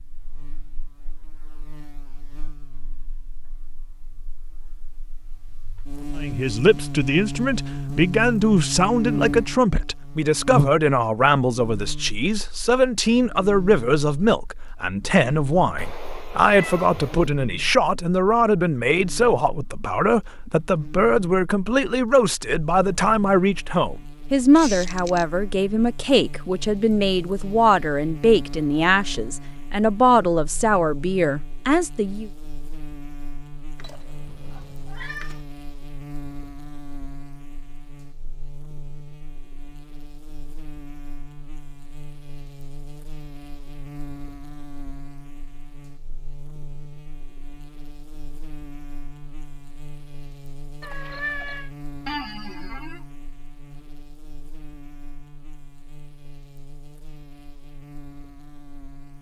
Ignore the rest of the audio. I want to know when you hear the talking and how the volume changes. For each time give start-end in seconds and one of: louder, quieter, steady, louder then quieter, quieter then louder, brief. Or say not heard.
6.2-32.3 steady.